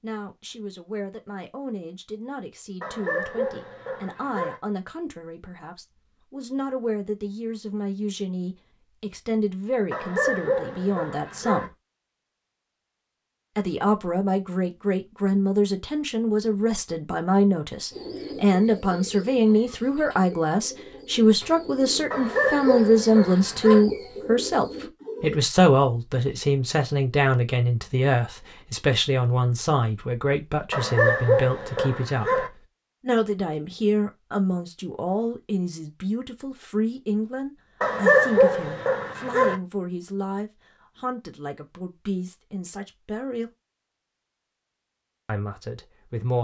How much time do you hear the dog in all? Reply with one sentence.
The dog can be heard for 9 seconds in total.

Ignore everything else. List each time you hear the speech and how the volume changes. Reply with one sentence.
You can hear the speech from 0.0 to 11.8 s, getting louder; from 13.6 to 43.5 s, getting quieter; and briefly from 45.2 to 46.3 s.